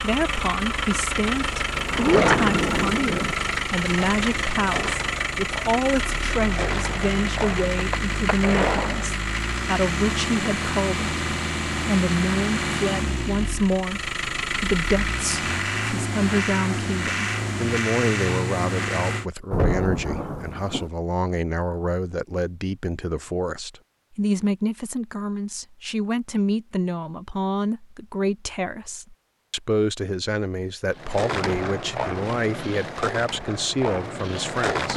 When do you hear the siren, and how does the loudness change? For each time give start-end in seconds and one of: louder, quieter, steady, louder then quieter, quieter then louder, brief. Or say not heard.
not heard.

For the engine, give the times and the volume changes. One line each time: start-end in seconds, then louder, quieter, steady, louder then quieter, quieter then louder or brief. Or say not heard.
0.0-19.3 steady.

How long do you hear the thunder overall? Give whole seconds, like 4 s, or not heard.
3 s.